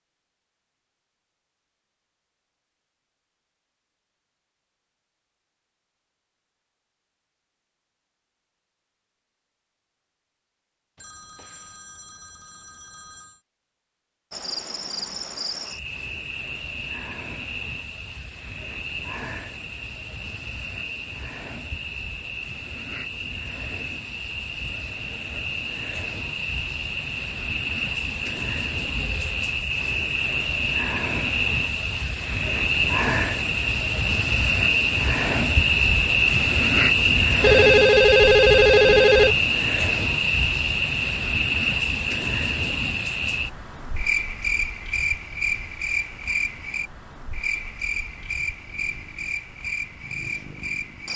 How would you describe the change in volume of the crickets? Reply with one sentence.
The loudness of the crickets goes up, then down.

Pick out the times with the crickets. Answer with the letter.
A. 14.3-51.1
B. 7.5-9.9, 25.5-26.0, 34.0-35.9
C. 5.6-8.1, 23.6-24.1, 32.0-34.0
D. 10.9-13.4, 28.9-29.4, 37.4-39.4
A.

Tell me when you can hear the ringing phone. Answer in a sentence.
The ringing phone can be heard from 10.9 to 13.4 s, from 28.9 to 29.4 s and from 37.4 to 39.4 s.